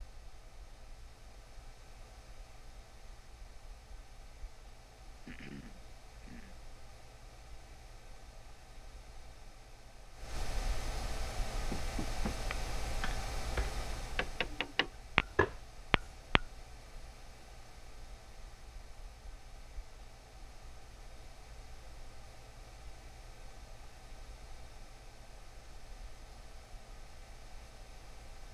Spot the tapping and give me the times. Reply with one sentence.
You can hear the tapping from 11.7 to 16.4 s.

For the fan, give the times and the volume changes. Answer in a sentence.
You can hear the fan from 0.0 to 28.4 s, getting louder then quieter.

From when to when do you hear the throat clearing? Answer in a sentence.
The throat clearing can be heard from 5.2 to 6.5 s.